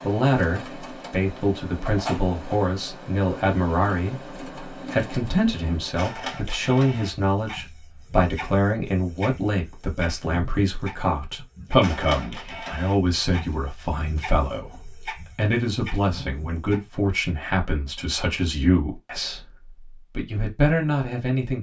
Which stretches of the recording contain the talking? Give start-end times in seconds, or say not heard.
0.0-4.2, 4.9-19.4, 20.1-21.5.